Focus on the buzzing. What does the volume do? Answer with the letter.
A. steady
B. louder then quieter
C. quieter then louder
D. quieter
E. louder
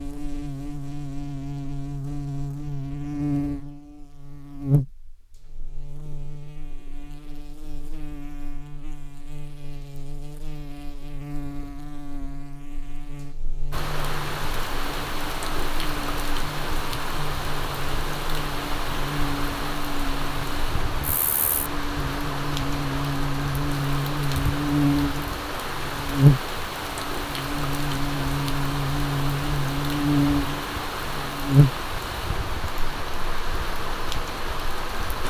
C.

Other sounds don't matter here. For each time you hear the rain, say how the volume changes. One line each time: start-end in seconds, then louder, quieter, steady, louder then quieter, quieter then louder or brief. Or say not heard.
13.7-35.2 steady.